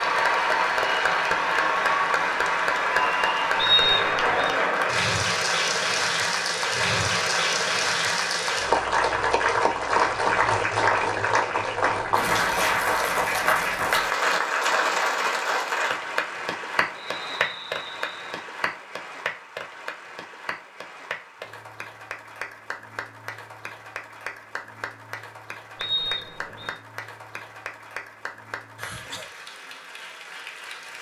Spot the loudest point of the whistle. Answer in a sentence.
The volume of the whistle peaks at 4 seconds.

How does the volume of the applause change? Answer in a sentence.
The volume of the applause goes down.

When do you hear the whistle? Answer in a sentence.
The whistle can be heard from 3.5 to 4.5 s, from 16.9 to 18.4 s and from 25.8 to 26.8 s.